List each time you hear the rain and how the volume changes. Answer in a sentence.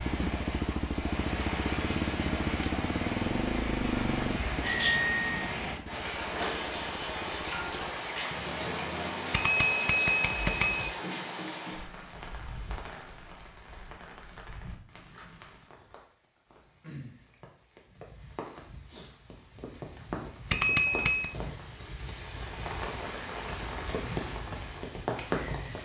You can hear the rain from 0.0 to 25.8 s, getting quieter then louder.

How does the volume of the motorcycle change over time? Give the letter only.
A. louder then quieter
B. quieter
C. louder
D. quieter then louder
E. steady
B.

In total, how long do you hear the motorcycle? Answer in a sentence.
You can hear the motorcycle for 9 seconds altogether.